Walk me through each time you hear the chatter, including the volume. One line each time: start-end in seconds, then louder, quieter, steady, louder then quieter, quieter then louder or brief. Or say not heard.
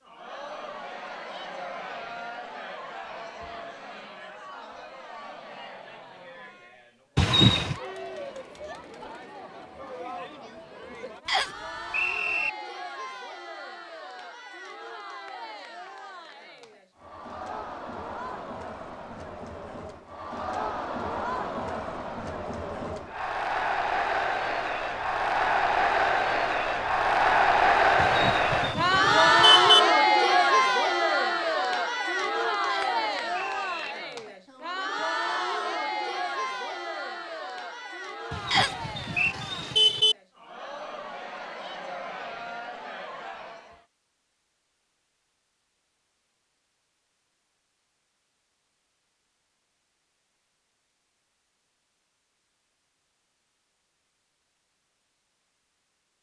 0.0-43.9 louder then quieter.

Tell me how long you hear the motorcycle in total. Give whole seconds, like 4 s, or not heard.
not heard.